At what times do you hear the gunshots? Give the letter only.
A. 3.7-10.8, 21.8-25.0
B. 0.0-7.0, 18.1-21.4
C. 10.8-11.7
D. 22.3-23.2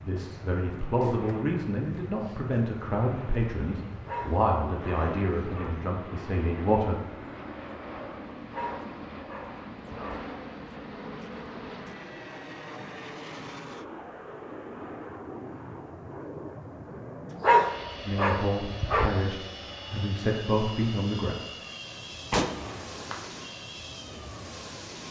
D.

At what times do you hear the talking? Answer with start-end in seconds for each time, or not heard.
0.0-7.0, 18.1-21.4.